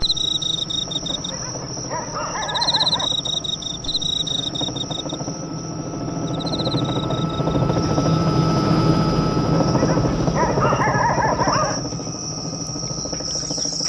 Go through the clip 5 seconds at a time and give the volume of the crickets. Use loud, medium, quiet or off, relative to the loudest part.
loud, medium, medium.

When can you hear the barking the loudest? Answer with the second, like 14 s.
11 s.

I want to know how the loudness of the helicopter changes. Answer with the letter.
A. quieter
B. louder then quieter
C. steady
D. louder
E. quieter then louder
B.